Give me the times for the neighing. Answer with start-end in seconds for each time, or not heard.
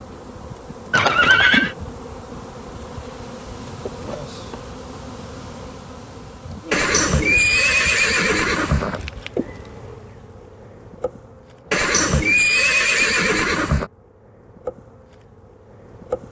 0.9-1.8, 6.7-9.0, 11.7-13.9.